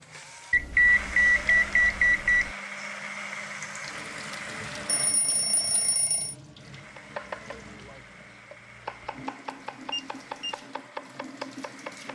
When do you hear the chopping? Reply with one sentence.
You can hear the chopping from 7.0 to 12.1 s.